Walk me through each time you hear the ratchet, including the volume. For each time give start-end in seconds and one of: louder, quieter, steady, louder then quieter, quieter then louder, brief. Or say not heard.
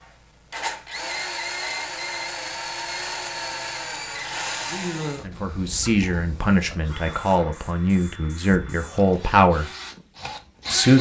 not heard.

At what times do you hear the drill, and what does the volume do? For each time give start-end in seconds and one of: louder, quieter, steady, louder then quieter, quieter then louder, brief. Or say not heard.
0.0-10.9 quieter.